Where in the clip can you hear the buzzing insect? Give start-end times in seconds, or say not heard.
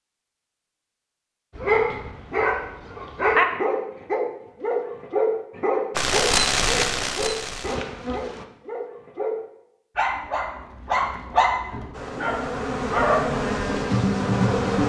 6.0-8.4, 11.9-14.8.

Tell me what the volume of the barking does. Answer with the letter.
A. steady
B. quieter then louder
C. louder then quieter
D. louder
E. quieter
B.